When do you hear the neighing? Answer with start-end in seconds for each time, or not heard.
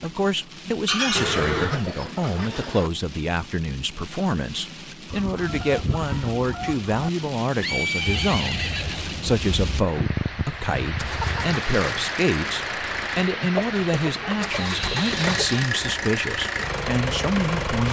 1.1-1.9, 7.6-9.2, 14.5-15.5.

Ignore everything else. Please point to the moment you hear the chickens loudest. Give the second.
1 s.